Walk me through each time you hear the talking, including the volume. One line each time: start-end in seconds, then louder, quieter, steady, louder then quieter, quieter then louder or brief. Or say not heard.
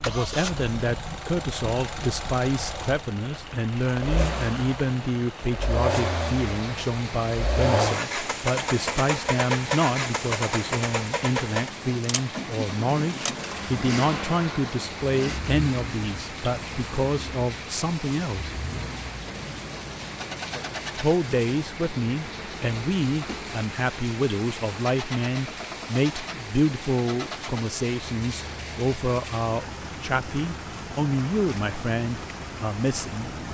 0.0-18.6 steady
20.9-33.3 steady.